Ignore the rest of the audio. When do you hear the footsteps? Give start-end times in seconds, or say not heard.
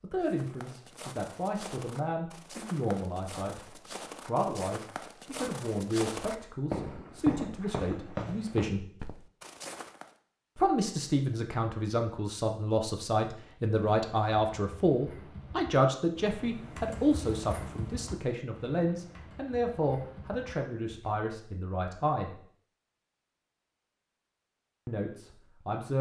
0.2-10.2.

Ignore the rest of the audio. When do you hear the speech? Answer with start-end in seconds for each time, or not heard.
0.0-3.6, 4.2-8.8, 10.6-22.4, 24.9-25.9.